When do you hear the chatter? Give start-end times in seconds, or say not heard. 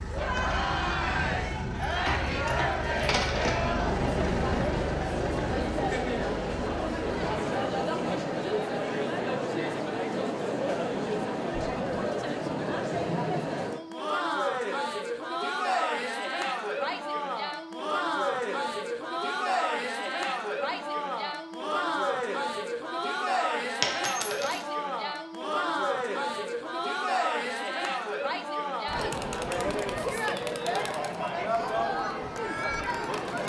0.1-33.4.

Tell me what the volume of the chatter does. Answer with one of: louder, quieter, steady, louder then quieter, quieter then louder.
steady.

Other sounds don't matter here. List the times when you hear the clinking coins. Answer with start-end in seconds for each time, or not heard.
1.9-3.5, 23.8-24.6.